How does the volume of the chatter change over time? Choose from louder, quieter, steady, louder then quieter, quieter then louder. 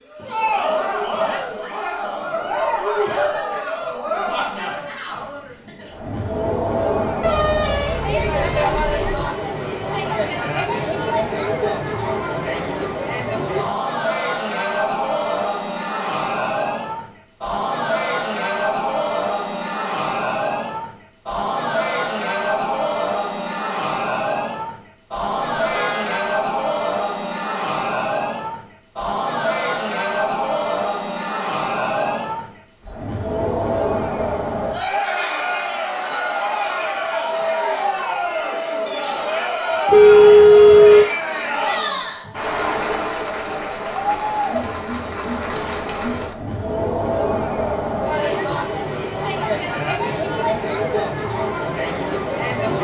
steady.